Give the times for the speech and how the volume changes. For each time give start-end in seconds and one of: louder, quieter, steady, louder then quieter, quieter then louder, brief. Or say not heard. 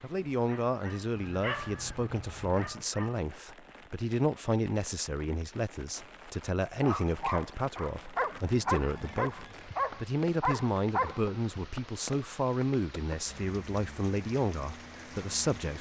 0.0-15.7 steady.